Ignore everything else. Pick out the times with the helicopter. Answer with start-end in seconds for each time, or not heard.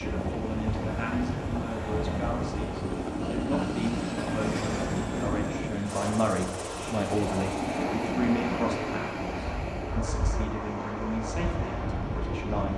0.0-12.7.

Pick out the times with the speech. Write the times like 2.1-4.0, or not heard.
0.0-12.7.